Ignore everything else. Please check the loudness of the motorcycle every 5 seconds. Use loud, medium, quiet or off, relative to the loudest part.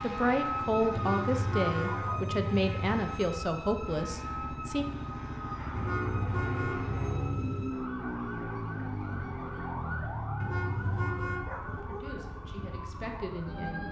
medium, loud, medium.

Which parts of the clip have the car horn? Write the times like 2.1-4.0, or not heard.
0.9-3.0, 5.8-7.8, 10.4-11.5.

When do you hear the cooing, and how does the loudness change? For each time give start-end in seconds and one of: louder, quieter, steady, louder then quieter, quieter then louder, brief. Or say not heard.
not heard.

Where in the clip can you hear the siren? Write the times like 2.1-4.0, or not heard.
0.0-13.8.